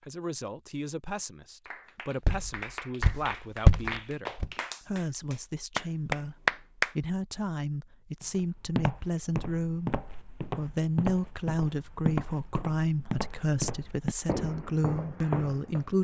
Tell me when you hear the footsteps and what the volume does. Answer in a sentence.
You can hear the footsteps briefly from 2.2 to 4.5 s; and from 8.2 to 15.8 s, at a steady volume.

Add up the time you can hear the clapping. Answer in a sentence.
The clapping can be heard for 5 seconds in total.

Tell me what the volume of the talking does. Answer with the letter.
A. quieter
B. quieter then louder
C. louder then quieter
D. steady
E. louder
E.